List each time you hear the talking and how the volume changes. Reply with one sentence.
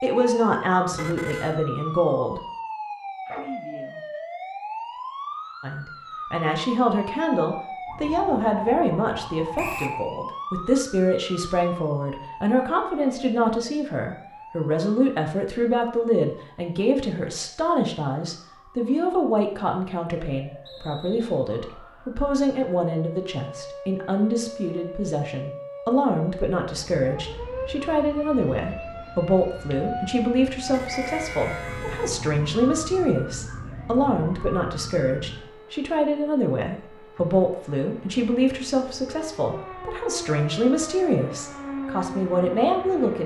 You can hear the talking briefly from 0.0 to 2.4 s; and from 5.6 to 43.2 s, at a steady volume.